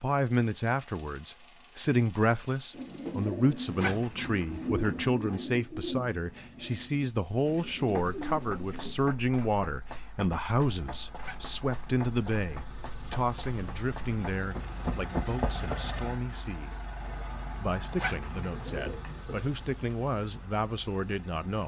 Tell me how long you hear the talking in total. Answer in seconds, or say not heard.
21 s.